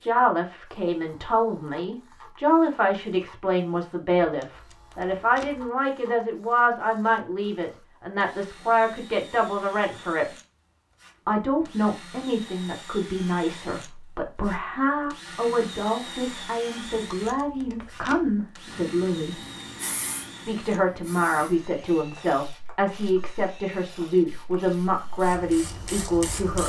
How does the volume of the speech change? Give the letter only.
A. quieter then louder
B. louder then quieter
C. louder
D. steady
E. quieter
D.